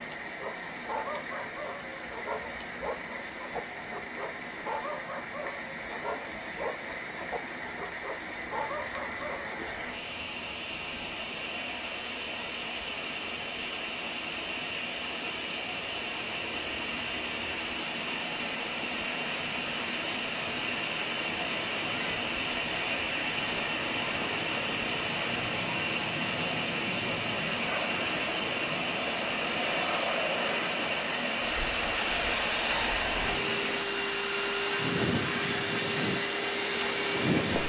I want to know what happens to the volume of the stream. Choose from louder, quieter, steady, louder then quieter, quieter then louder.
louder.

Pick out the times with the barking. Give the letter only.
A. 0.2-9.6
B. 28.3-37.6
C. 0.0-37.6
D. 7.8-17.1
A.